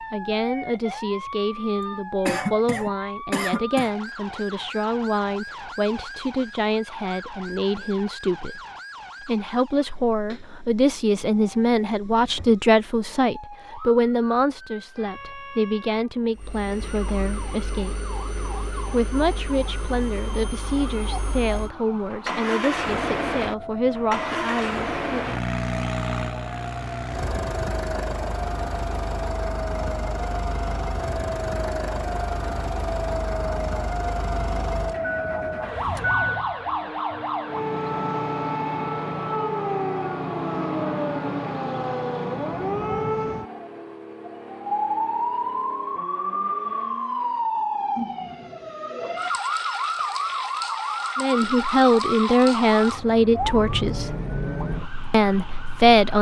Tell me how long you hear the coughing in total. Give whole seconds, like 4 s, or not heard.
2 s.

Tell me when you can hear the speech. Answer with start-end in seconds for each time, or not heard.
0.1-8.6, 9.2-18.0, 18.9-25.2, 51.1-54.1, 55.1-56.1.